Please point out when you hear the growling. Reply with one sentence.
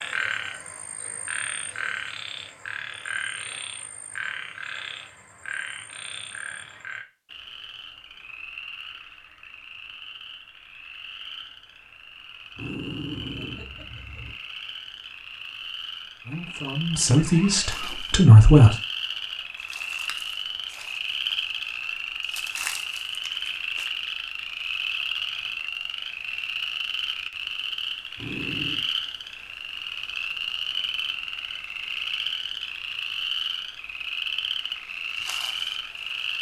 The growling can be heard from 12.6 to 14.3 s and from 28.1 to 28.9 s.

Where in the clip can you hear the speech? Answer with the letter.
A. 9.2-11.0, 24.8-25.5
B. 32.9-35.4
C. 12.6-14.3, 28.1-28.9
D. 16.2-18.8
D.